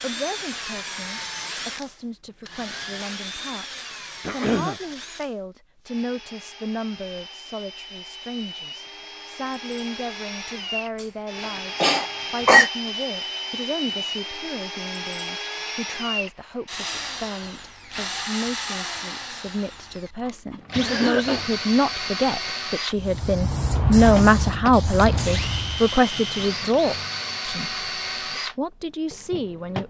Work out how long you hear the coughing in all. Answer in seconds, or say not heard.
3 s.